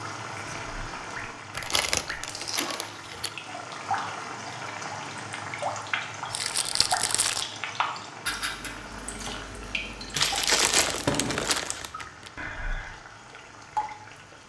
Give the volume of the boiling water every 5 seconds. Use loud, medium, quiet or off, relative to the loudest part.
loud, loud, medium.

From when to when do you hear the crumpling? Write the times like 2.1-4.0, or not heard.
1.6-3.3, 6.3-7.5, 10.2-12.3.